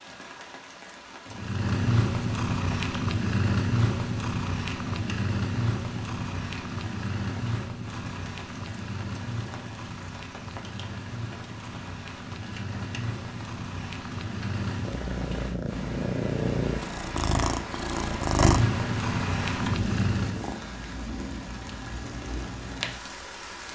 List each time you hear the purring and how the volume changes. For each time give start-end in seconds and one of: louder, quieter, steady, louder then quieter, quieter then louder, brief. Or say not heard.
1.3-20.6 quieter then louder.